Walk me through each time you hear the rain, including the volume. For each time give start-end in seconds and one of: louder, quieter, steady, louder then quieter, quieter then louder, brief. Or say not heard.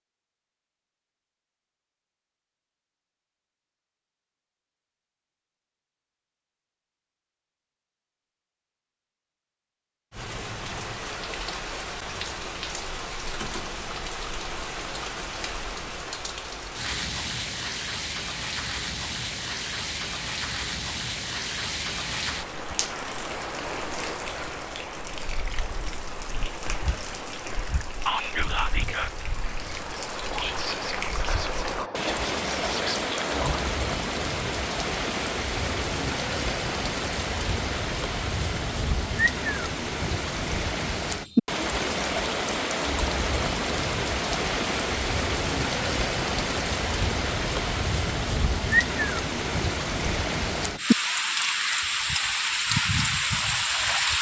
10.1-54.1 louder.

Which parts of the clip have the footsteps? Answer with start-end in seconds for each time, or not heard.
not heard.